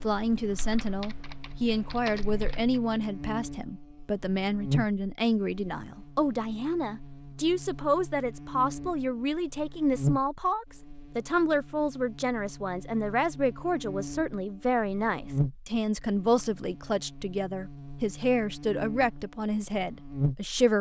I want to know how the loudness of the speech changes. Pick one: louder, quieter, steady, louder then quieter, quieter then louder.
steady.